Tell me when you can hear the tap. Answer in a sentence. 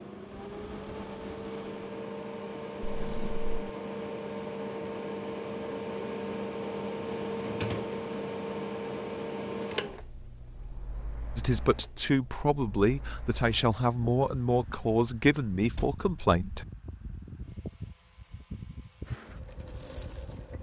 You can hear the tap from 19.1 to 20.5 s.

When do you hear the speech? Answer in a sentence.
The speech can be heard from 11.3 to 16.6 s.